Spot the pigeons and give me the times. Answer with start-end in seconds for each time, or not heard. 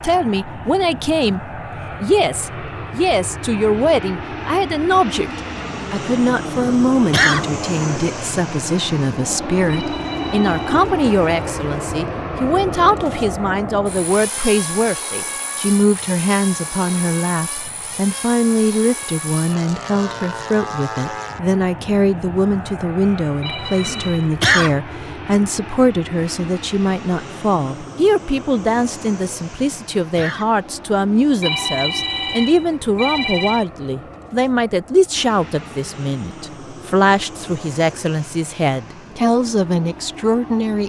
not heard.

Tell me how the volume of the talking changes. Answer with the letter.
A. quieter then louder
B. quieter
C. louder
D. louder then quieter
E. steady
E.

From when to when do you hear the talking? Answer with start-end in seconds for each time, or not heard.
0.0-40.8.